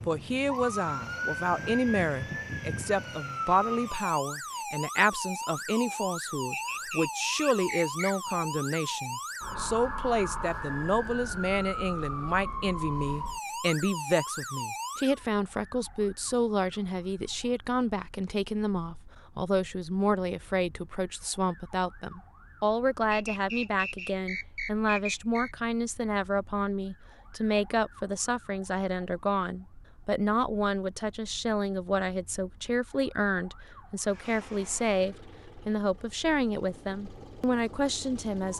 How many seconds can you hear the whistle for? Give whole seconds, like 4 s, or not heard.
4 s.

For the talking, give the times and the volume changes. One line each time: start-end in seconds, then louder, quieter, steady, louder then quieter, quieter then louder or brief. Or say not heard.
0.1-38.5 steady.